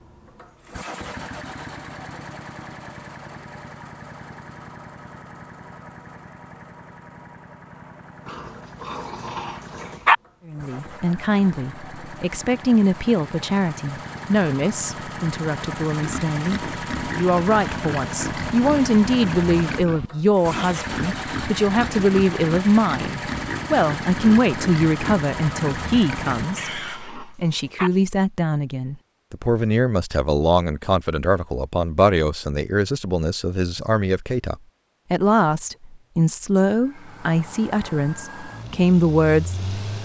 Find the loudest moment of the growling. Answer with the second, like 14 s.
10 s.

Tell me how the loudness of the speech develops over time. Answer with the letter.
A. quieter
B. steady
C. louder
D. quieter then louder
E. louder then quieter
B.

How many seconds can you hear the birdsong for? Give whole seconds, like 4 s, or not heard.
not heard.